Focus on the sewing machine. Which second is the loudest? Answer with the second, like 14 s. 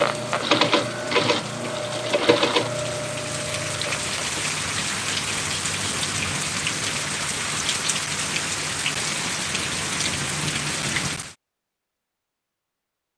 1 s.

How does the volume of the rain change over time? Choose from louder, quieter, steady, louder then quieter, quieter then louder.
louder.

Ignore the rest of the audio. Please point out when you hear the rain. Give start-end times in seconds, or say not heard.
0.0-11.3.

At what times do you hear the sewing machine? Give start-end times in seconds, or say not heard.
0.0-4.4.